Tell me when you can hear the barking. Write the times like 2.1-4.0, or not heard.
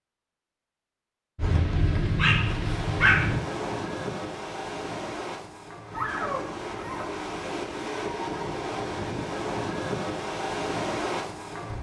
1.4-3.4, 5.9-7.2.